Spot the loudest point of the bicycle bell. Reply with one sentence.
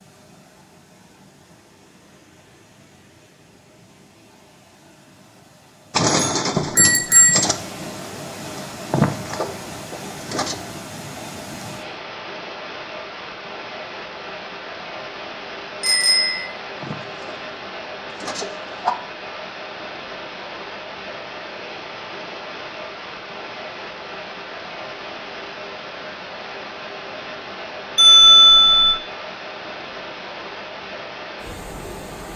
The loudest moment of the bicycle bell is at 28 seconds.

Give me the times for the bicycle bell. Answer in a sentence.
The bicycle bell can be heard from 6.0 to 7.3 s, from 15.8 to 16.5 s and from 27.9 to 28.9 s.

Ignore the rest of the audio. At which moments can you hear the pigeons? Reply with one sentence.
You can hear the pigeons from 5.9 to 10.6 s and from 16.8 to 18.9 s.